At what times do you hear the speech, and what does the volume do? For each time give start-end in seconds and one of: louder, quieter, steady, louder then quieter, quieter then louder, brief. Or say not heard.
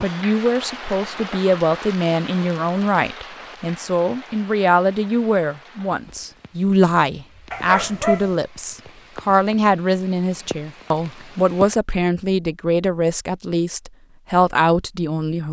0.0-15.4 steady.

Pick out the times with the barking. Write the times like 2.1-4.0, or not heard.
7.5-8.3.